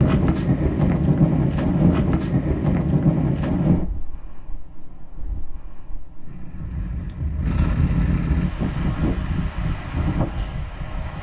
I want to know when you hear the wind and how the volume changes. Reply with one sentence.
You can hear the wind from 0.0 to 11.1 s, getting quieter then louder.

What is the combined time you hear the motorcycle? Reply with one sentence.
You can hear the motorcycle for 2 seconds altogether.